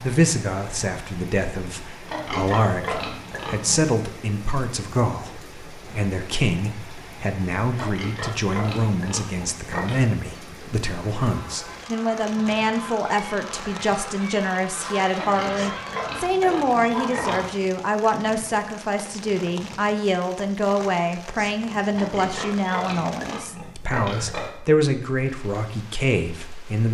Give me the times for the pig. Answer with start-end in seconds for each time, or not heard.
2.0-3.9, 7.7-10.0, 15.1-17.4, 21.9-24.6.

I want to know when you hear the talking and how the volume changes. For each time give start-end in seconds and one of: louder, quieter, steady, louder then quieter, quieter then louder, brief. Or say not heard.
0.0-26.8 steady.